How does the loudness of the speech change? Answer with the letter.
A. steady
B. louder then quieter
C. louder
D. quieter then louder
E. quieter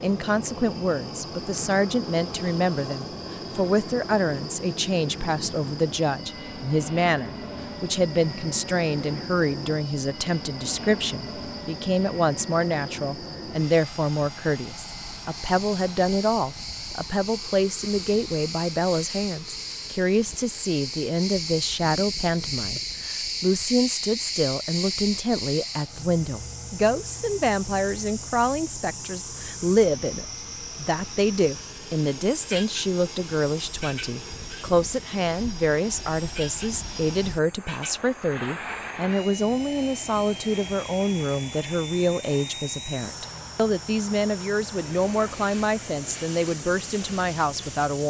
A.